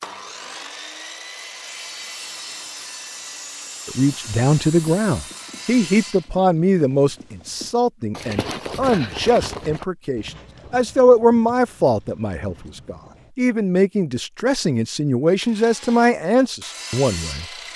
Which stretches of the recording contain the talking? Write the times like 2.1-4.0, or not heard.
3.9-17.4.